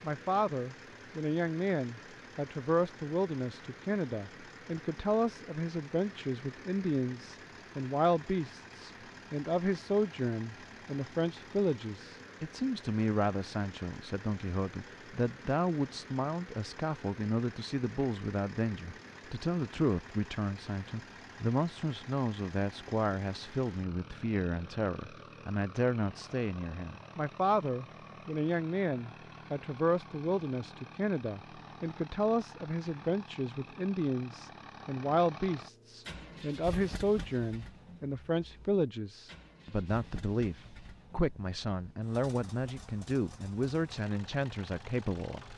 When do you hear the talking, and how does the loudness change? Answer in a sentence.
The talking can be heard from 0.0 to 45.5 s, at a steady volume.